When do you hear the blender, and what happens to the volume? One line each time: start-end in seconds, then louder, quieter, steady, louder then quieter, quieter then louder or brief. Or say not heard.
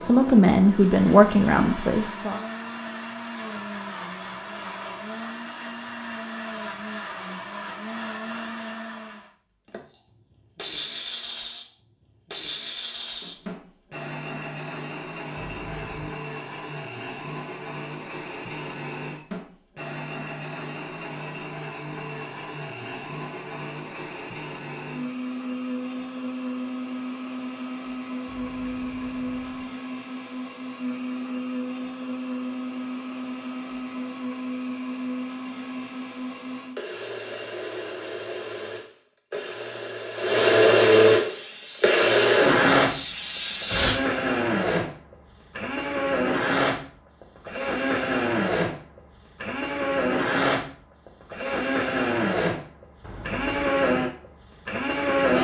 0.0-55.3 louder.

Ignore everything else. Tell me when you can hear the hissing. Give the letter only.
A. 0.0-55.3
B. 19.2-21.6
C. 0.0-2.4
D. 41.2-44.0
D.